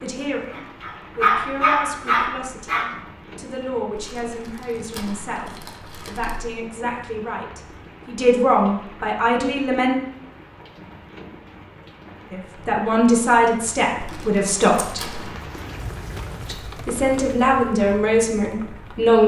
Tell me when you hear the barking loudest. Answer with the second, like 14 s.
1 s.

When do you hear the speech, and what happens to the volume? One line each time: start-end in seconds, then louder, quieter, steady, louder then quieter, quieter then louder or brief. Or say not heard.
0.0-9.9 louder
12.3-15.1 brief
16.4-19.2 brief.